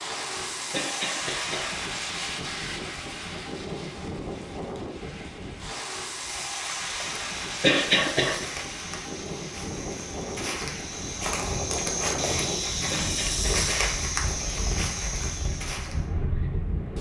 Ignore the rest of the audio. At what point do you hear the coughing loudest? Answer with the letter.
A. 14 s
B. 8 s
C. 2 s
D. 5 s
B.